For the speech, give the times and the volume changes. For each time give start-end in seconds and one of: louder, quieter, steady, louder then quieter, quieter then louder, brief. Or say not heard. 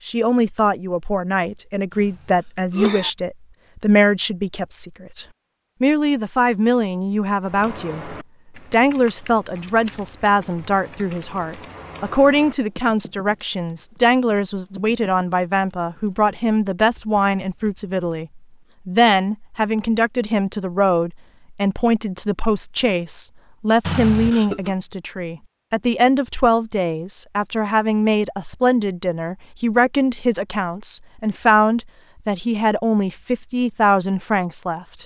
0.1-35.0 steady.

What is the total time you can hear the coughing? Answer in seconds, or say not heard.
2 s.